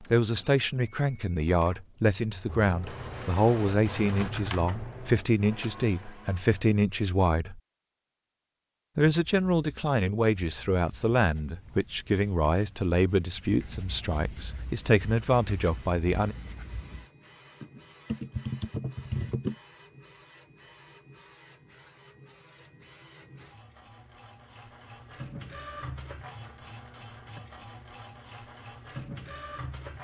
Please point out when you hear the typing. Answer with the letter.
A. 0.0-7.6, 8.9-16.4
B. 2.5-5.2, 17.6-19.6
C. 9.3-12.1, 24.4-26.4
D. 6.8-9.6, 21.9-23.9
B.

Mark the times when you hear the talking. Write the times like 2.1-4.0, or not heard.
0.0-7.6, 8.9-16.4.